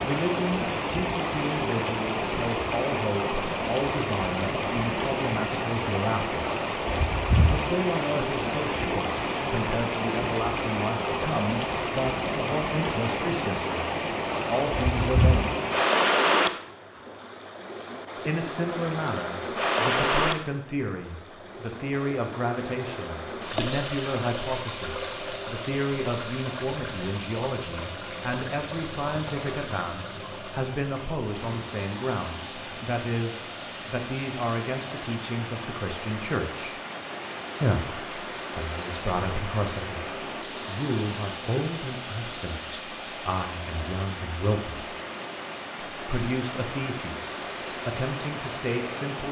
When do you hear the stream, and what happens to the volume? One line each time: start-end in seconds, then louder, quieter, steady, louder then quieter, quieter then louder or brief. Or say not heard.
0.0-49.2 quieter.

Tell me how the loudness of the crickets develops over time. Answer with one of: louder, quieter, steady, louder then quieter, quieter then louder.
louder.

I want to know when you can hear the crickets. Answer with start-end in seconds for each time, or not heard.
0.1-35.1.